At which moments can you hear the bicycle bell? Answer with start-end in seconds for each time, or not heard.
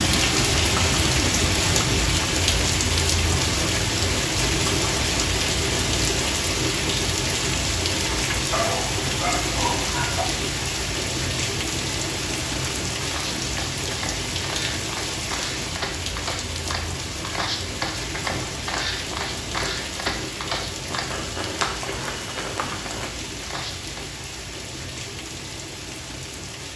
not heard.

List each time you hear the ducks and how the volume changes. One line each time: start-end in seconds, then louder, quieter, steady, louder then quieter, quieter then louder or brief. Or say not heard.
not heard.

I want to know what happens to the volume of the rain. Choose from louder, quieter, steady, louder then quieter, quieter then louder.
quieter.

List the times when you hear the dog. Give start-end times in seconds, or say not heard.
8.5-10.2.